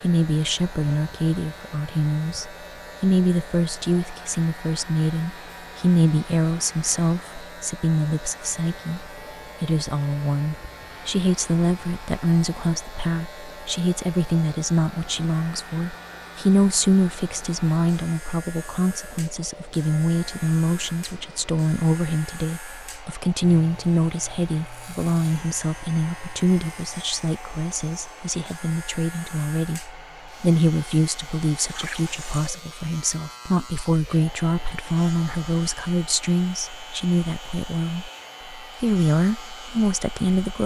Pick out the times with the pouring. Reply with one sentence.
You can hear the pouring from 31.6 to 32.6 s.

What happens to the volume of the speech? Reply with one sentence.
The loudness of the speech stays about the same.